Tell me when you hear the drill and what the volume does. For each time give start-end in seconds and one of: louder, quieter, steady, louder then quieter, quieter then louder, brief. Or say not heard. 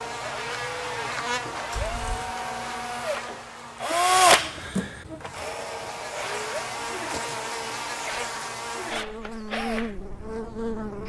0.0-11.0 louder then quieter.